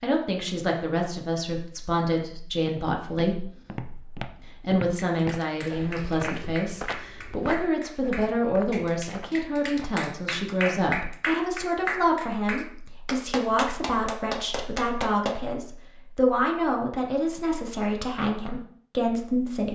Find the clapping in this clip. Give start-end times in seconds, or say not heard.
5.0-15.3.